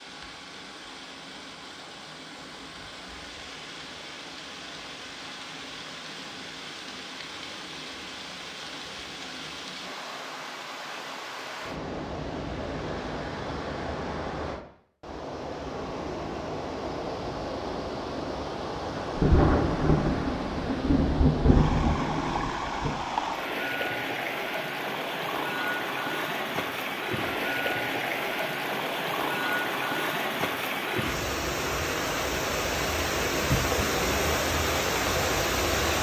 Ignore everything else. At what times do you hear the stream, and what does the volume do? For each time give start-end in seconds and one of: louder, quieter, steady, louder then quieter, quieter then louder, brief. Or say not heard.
0.0-35.9 louder.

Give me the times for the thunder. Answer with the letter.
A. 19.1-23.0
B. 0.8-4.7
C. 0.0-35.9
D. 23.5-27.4
A.